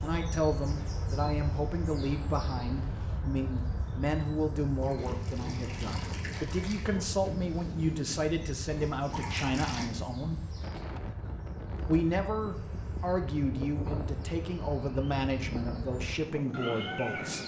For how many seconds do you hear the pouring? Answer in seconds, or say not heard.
3 s.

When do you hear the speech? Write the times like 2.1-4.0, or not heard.
0.0-10.4, 11.8-17.4.